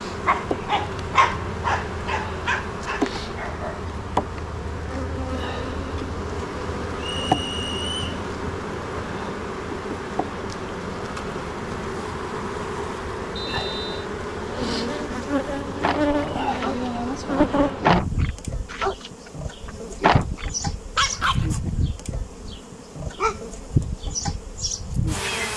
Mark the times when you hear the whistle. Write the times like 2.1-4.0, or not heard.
7.0-8.2, 13.3-14.1.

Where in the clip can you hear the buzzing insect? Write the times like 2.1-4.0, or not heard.
0.0-25.5.